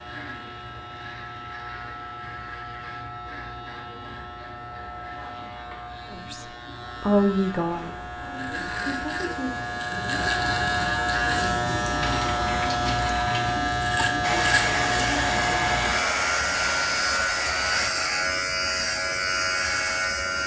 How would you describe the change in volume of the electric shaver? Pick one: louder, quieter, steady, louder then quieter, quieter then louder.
louder.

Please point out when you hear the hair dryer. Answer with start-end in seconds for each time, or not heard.
14.2-17.9.